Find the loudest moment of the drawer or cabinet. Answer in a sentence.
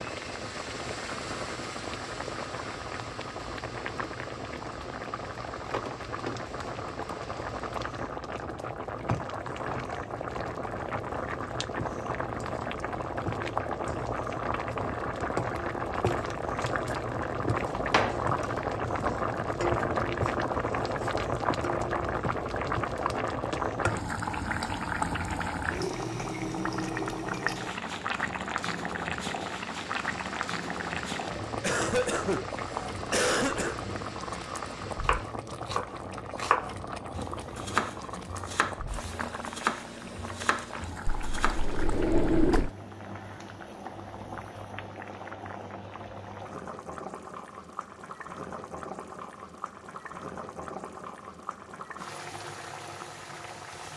The loudest moment of the drawer or cabinet is at 42 seconds.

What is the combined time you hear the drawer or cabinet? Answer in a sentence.
You can hear the drawer or cabinet for 2 seconds altogether.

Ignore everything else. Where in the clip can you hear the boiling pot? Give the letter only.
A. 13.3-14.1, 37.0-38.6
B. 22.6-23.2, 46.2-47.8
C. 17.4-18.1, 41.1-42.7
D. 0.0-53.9
D.